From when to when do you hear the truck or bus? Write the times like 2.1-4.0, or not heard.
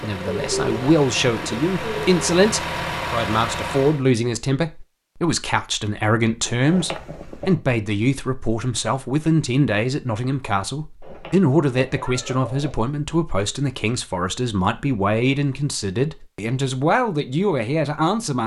0.0-4.0.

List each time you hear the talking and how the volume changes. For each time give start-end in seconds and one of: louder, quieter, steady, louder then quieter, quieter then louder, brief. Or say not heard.
0.0-18.4 steady.